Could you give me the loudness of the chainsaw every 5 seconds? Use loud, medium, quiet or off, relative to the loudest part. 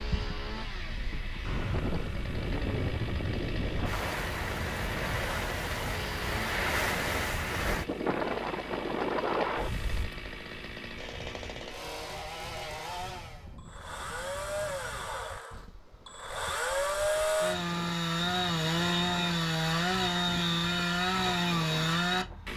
quiet, quiet, medium, loud, loud.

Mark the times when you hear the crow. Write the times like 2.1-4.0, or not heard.
not heard.